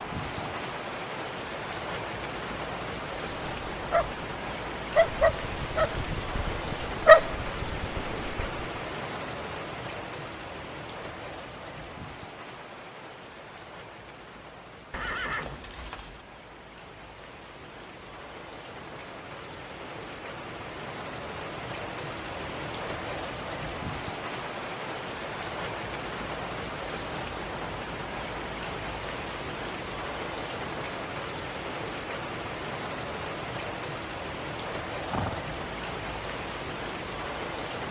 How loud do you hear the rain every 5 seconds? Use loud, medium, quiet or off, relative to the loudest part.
loud, loud, medium, medium, loud, loud, loud, loud.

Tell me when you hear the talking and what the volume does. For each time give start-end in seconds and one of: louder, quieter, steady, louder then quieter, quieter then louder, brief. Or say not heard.
not heard.